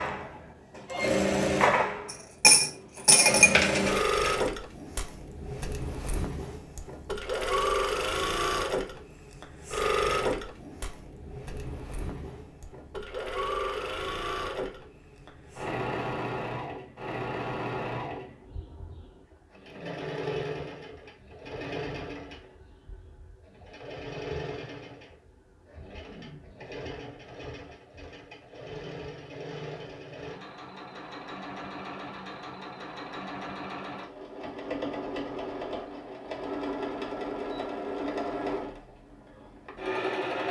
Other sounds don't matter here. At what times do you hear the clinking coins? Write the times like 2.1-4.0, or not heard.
2.0-4.1.